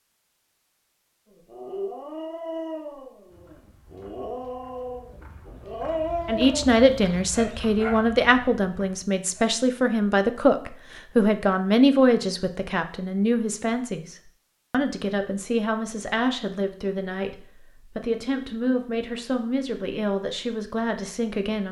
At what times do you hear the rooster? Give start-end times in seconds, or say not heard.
not heard.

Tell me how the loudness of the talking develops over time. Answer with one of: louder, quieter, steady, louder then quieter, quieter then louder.
quieter.